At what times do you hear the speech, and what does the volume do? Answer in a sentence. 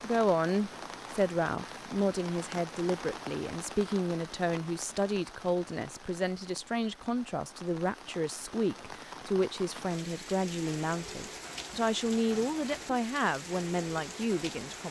The speech can be heard from 0.0 to 14.8 s, at a steady volume.